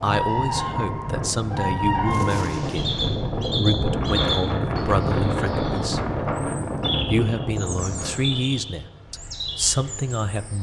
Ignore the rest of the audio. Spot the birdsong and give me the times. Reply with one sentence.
You can hear the birdsong from 0.0 to 10.5 s.